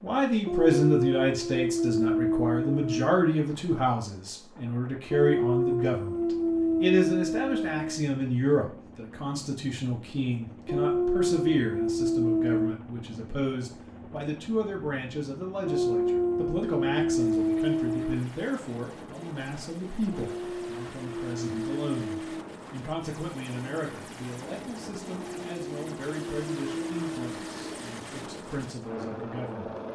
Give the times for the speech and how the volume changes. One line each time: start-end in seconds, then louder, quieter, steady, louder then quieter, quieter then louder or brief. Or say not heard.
0.0-29.7 quieter.